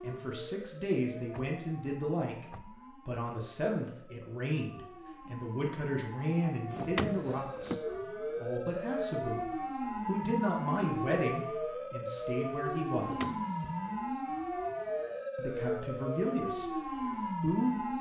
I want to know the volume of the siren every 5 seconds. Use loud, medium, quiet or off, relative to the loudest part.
quiet, loud, loud, loud.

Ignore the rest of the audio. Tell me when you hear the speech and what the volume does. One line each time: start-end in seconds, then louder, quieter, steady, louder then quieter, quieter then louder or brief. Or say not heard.
0.0-13.3 steady
15.3-17.9 brief.